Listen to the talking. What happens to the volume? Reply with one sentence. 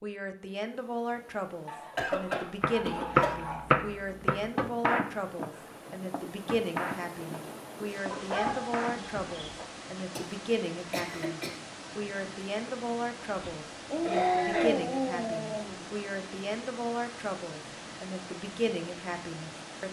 The volume of the talking stays about the same.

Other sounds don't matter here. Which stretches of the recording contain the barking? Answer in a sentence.
The barking can be heard from 1.6 to 3.7 s, from 8.1 to 9.7 s and from 13.8 to 15.8 s.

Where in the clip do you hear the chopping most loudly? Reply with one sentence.
The loudest moment of the chopping is at 3 seconds.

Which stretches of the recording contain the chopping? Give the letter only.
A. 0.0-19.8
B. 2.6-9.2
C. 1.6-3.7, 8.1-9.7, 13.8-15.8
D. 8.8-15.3
B.